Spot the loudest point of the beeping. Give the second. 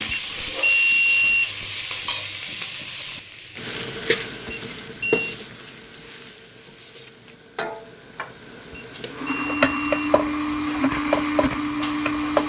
1 s.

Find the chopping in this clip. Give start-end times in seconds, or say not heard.
not heard.